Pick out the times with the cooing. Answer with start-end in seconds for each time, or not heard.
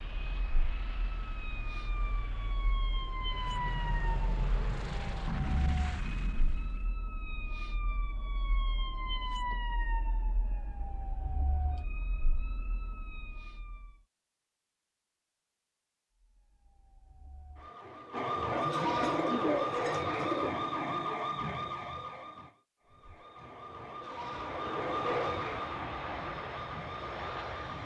18.5-20.5.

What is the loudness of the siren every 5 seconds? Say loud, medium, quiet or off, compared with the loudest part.
medium, medium, quiet, loud, loud, loud.